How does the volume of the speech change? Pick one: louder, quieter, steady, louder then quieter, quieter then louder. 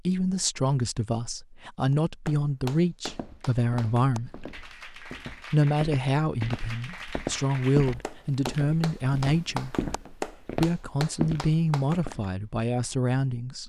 steady.